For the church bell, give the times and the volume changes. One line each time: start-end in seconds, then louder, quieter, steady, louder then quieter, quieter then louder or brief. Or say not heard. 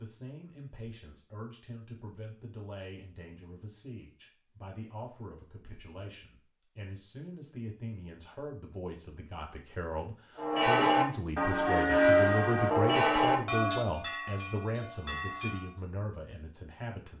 10.3-15.8 quieter.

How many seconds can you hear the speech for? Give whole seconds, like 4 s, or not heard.
17 s.